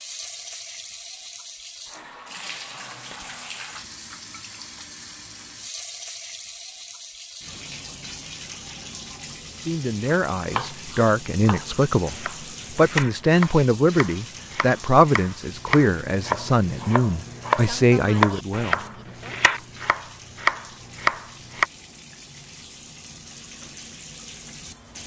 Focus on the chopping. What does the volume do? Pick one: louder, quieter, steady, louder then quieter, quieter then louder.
louder.